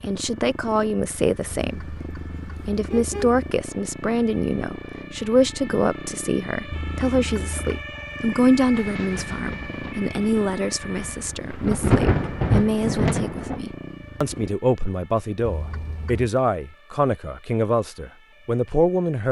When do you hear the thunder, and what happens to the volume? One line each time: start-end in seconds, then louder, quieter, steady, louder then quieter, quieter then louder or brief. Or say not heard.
8.8-13.7 quieter then louder.